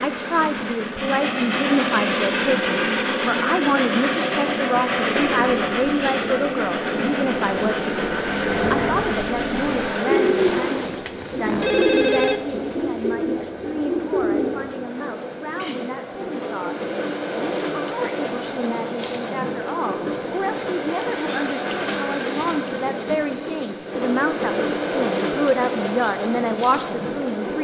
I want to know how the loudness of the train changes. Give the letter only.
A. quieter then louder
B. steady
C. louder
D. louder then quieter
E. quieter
A.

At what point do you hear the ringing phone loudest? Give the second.
12 s.